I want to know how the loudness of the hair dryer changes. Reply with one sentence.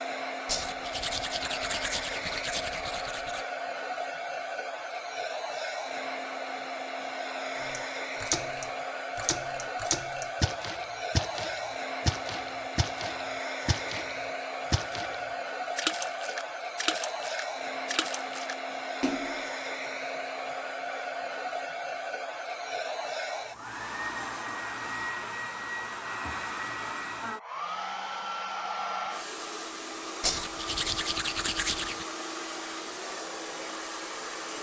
The volume of the hair dryer stays about the same.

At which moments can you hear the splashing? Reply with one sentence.
You can hear the splashing from 7.6 to 15.2 s and from 15.8 to 19.5 s.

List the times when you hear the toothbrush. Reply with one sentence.
You can hear the toothbrush from 0.5 to 3.5 s and from 30.2 to 32.0 s.